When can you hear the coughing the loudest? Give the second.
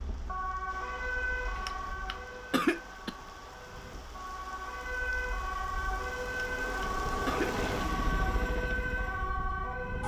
3 s.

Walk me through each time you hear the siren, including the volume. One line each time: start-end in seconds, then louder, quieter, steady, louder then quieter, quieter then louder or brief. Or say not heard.
0.0-10.0 quieter then louder.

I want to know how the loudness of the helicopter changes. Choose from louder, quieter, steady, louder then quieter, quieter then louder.
louder then quieter.